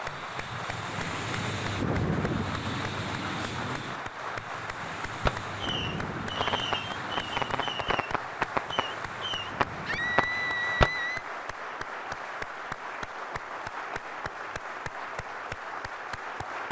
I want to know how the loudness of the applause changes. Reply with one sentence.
The loudness of the applause stays about the same.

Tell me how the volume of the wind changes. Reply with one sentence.
The loudness of the wind goes down.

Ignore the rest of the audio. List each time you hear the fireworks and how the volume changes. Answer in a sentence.
You can hear the fireworks from 5.2 to 10.9 s, at a steady volume.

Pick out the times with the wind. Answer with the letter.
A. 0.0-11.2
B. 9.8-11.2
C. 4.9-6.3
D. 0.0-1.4
A.